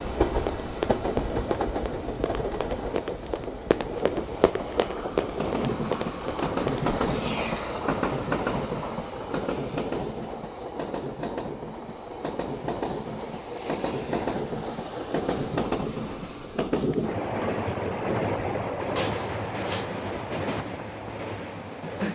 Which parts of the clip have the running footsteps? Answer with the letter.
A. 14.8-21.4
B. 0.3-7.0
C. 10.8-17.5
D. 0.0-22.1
B.